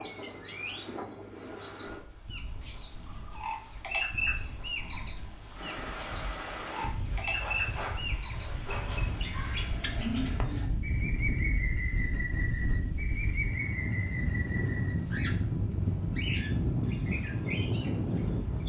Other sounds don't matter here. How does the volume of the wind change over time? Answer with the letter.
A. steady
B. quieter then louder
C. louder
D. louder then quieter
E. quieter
C.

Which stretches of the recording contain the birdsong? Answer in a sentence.
You can hear the birdsong from 0.0 to 18.6 s.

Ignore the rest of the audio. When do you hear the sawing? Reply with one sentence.
The sawing can be heard from 7.1 to 9.1 s.